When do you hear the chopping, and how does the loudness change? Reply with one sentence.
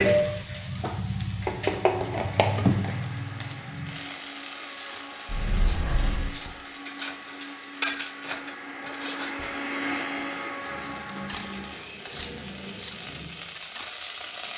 The chopping can't be heard in this clip.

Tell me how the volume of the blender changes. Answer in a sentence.
The loudness of the blender goes up, then down.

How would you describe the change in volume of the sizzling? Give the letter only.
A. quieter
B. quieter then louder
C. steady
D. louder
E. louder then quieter
B.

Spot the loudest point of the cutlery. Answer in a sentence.
The volume of the cutlery peaks at 8 seconds.